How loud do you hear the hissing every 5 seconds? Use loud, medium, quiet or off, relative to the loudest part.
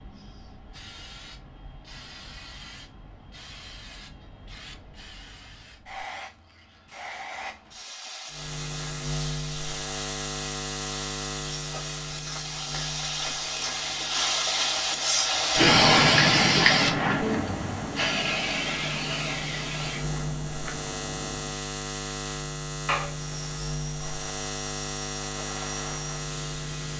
quiet, quiet, medium, loud, quiet, quiet.